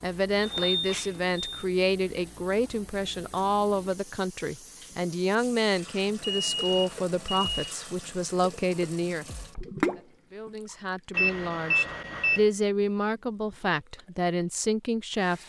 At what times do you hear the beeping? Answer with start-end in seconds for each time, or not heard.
0.4-1.6, 6.2-7.8, 11.1-12.4.